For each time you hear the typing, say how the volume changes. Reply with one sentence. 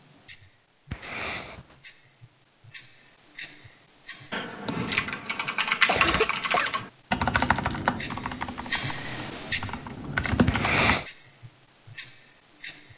The typing can be heard from 4.3 to 10.9 s, getting quieter then louder.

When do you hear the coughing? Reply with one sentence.
The coughing can be heard from 0.9 to 1.8 s, from 5.2 to 6.8 s and from 10.4 to 11.1 s.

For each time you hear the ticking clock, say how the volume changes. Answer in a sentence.
The ticking clock can be heard from 0.0 to 12.9 s, getting louder then quieter.